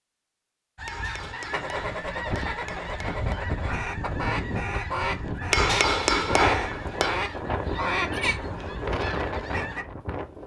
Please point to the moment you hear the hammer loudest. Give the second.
6 s.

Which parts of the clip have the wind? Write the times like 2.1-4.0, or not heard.
1.7-10.4.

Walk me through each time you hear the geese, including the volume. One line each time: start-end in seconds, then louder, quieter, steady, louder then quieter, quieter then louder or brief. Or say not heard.
0.8-9.8 steady.